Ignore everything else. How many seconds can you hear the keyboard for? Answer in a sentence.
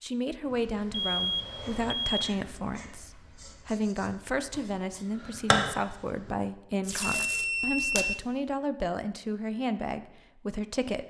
The keyboard can't be heard in this clip.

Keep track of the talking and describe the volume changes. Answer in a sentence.
The volume of the talking stays about the same.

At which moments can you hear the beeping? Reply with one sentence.
The beeping can be heard from 0.9 to 2.4 s and from 7.0 to 8.2 s.